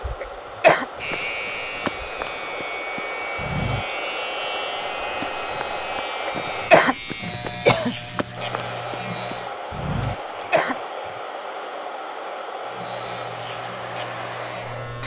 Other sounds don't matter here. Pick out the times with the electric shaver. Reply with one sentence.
The electric shaver can be heard from 0.0 to 9.5 s and from 12.7 to 15.0 s.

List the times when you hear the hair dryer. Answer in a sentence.
You can hear the hair dryer from 0.0 to 6.7 s and from 8.3 to 15.0 s.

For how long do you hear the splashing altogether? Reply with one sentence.
You can't hear the splashing here.